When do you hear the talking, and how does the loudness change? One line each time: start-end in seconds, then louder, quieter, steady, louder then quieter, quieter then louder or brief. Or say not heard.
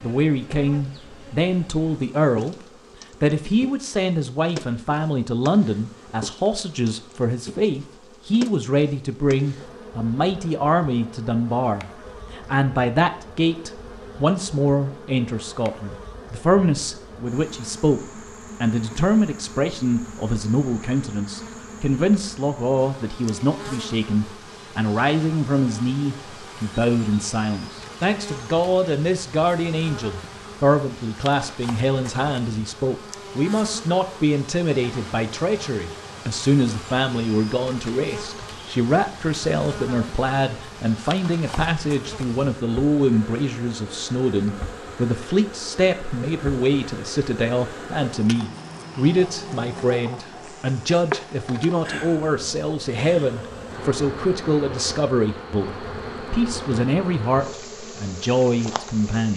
0.0-2.5 brief
3.2-59.3 steady.